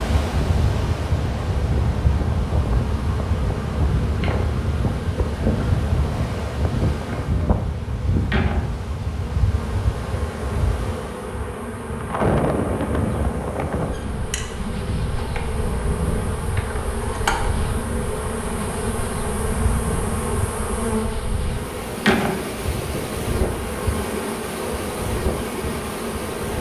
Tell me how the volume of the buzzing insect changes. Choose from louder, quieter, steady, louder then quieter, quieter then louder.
louder.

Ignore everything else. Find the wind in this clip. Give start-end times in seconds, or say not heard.
0.0-26.5.